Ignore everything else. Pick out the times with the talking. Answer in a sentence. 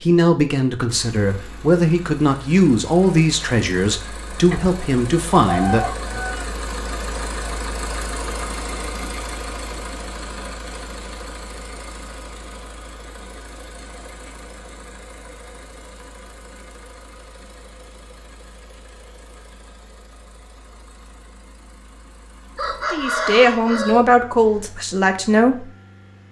You can hear the talking from 0.0 to 6.2 s and from 22.9 to 25.6 s.